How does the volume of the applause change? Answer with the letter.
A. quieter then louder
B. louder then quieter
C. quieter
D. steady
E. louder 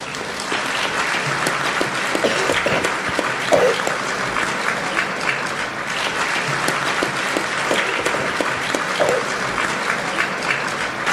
D.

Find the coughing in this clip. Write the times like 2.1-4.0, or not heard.
2.2-3.8, 7.7-9.2.